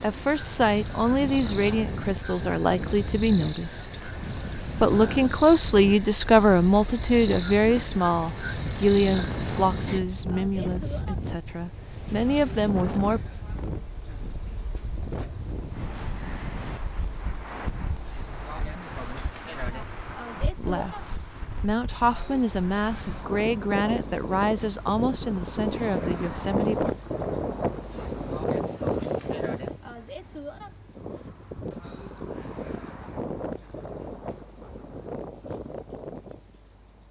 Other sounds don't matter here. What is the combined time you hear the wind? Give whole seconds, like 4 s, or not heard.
37 s.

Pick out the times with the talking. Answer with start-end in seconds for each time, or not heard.
0.0-4.0, 4.8-13.2, 20.6-26.9.